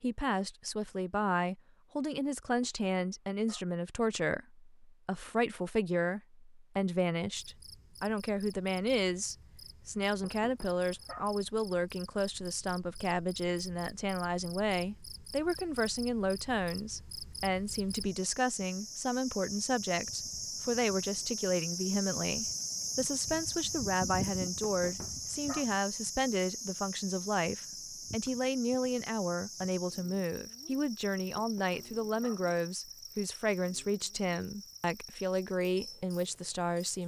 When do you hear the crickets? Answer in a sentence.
The crickets can be heard from 7.3 to 37.0 s.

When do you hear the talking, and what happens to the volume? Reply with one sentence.
The talking can be heard from 0.0 to 37.0 s, at a steady volume.